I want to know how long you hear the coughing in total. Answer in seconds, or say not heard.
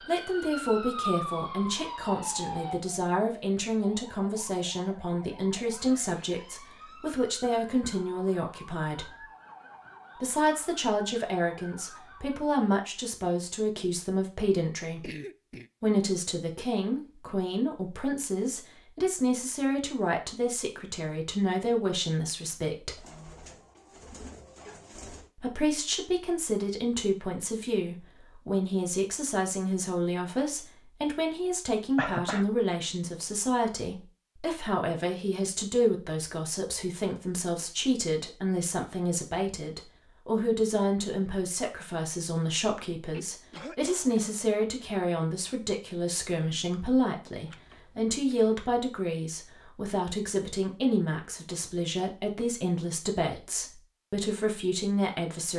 3 s.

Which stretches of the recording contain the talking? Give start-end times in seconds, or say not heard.
0.0-9.2, 10.2-15.1, 15.8-23.0, 25.4-55.5.